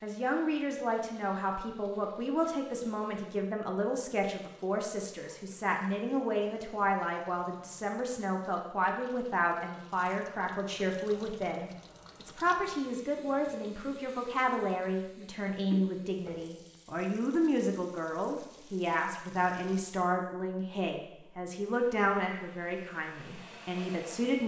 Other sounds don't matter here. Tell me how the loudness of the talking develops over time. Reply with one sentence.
The volume of the talking stays about the same.